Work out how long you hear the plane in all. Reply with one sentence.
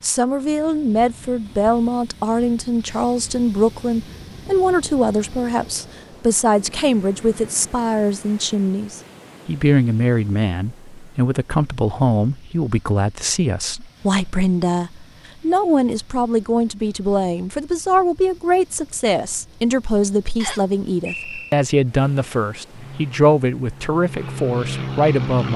The plane can be heard for 3 seconds in total.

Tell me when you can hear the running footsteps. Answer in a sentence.
You can't hear the running footsteps here.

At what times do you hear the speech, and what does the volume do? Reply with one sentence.
The speech can be heard from 0.0 to 25.5 s, at a steady volume.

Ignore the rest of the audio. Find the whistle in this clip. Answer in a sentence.
The whistle can be heard from 20.4 to 21.6 s.